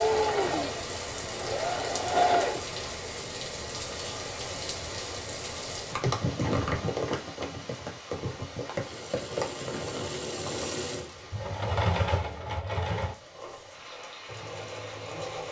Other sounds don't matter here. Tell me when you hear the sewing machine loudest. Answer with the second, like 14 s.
2 s.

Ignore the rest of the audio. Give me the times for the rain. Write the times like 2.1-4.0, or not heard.
0.0-15.4.